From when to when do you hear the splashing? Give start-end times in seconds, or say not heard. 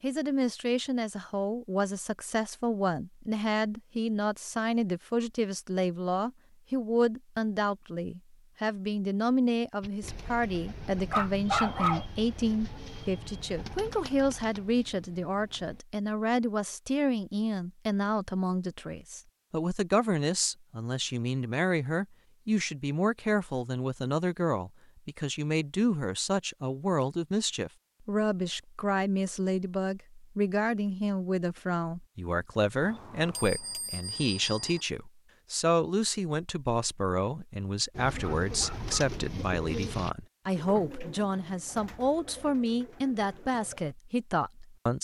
not heard.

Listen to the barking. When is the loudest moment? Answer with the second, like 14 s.
12 s.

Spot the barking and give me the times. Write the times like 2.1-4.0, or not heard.
11.1-12.1, 38.2-39.0.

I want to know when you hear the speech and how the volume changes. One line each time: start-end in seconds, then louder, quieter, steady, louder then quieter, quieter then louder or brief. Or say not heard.
0.0-44.9 steady.